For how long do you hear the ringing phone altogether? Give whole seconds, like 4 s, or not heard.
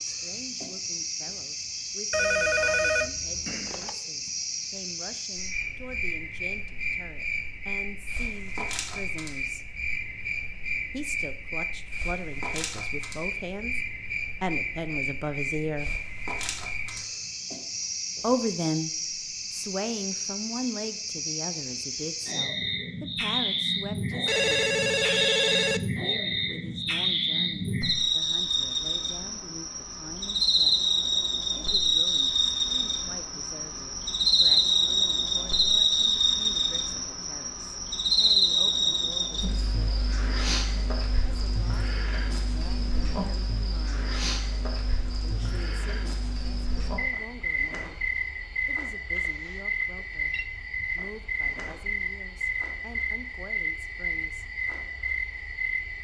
5 s.